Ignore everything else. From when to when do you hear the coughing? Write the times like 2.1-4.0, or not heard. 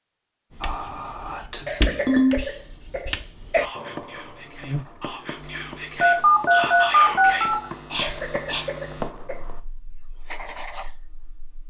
1.6-3.6, 8.0-9.4.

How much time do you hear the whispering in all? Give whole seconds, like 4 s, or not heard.
8 s.